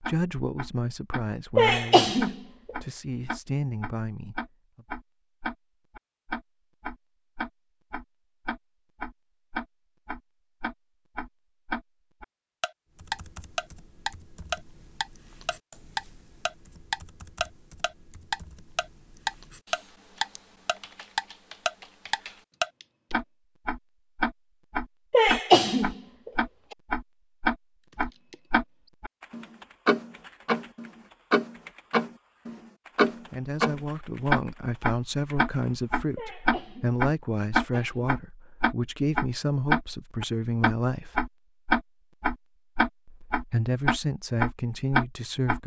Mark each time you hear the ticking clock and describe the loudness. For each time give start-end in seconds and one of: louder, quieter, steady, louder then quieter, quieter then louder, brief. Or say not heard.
0.0-45.6 louder.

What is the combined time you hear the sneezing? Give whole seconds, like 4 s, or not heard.
3 s.